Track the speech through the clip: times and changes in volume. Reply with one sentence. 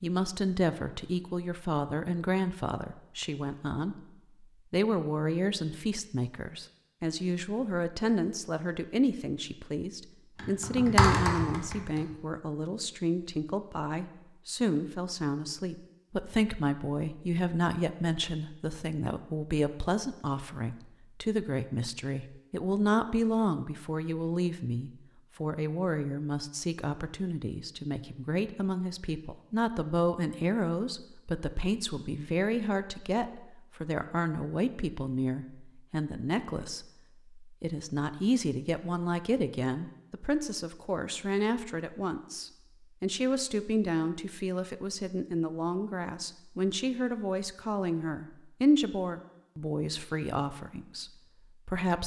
The speech can be heard from 0.0 to 52.0 s, at a steady volume.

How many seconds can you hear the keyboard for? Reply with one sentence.
The keyboard can be heard for 2 seconds in total.